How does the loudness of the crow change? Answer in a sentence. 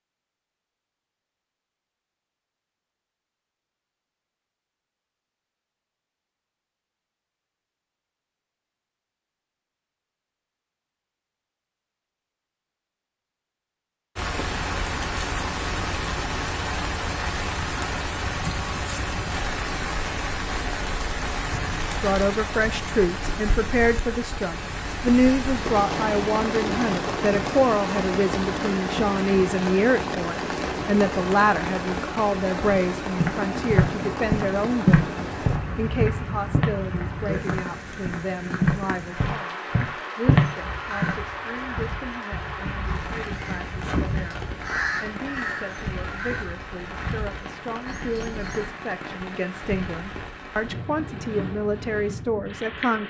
The volume of the crow goes up, then down.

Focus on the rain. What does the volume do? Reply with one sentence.
The volume of the rain goes down.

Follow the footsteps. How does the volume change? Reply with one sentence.
The volume of the footsteps goes down, then up.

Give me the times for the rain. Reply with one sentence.
You can hear the rain from 14.2 to 53.0 s.